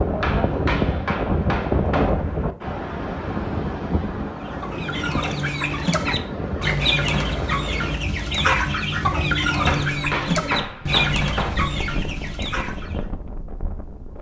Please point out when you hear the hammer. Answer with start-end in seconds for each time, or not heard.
0.2-2.1, 9.7-11.6.